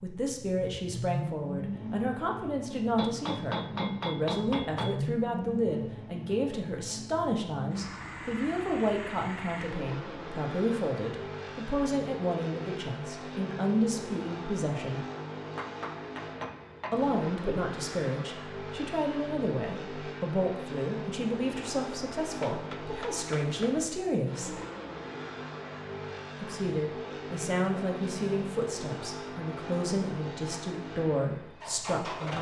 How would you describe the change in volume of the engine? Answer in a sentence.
The loudness of the engine stays about the same.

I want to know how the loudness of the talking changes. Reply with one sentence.
The volume of the talking stays about the same.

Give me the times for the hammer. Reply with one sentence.
The hammer can be heard from 3.0 to 5.0 s, from 15.6 to 17.0 s and from 22.3 to 23.8 s.